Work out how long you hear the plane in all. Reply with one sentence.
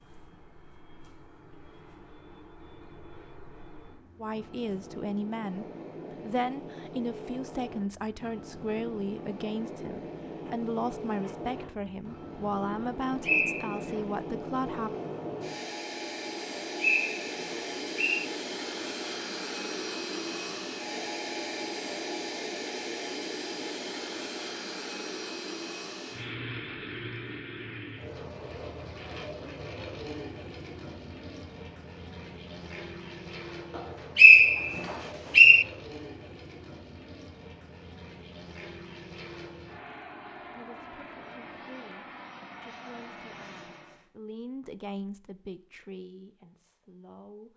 You can hear the plane for 44 seconds altogether.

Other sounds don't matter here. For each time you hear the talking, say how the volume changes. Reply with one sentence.
The talking can be heard from 4.2 to 14.9 s, at a steady volume; and from 40.5 to 47.5 s, getting louder then quieter.